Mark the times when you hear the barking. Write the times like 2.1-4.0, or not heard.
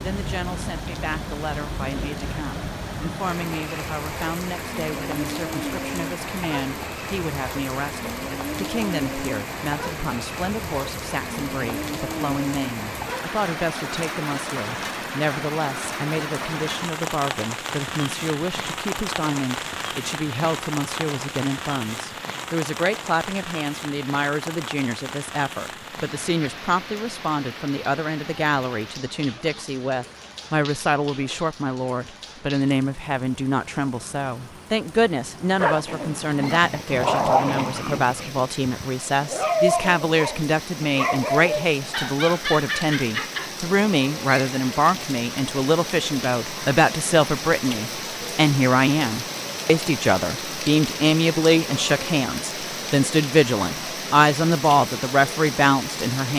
35.6-43.5.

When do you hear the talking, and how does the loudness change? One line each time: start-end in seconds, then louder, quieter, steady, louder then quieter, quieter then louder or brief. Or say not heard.
0.0-56.3 louder.